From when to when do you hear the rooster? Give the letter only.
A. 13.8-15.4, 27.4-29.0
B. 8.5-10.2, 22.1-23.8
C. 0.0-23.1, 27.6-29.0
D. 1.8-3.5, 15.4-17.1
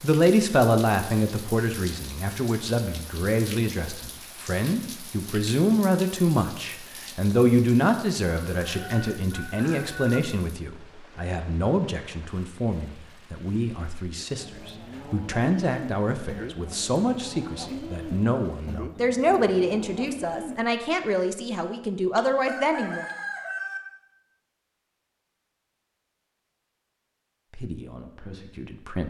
B.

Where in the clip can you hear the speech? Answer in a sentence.
You can hear the speech from 0.0 to 23.1 s and from 27.6 to 29.0 s.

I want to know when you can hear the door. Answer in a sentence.
The door can't be heard in this clip.